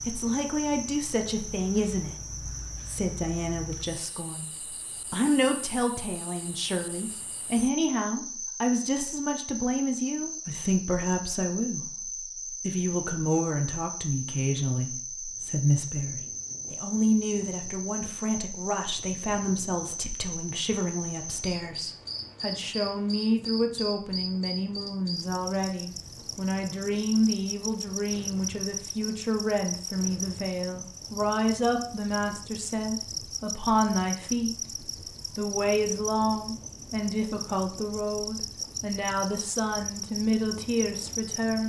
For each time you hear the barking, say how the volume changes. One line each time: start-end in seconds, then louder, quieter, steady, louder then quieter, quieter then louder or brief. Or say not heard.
not heard.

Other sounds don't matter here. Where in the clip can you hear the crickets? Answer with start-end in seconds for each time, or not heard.
0.0-41.6.